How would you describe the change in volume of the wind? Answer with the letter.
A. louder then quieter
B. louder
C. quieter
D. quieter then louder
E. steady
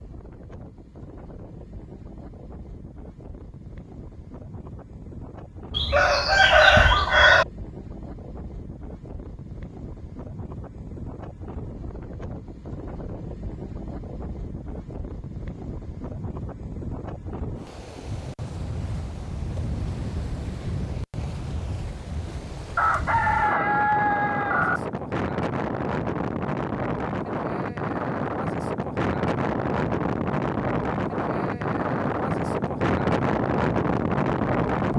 B.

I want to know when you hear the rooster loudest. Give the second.
7 s.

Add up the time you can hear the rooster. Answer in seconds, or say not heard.
4 s.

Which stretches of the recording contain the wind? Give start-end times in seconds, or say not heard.
0.0-34.9.